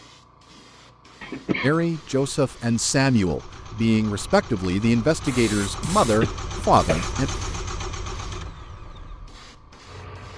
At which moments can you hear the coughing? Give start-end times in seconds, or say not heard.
1.2-1.8, 5.6-7.2.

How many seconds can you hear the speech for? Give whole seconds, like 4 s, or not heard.
6 s.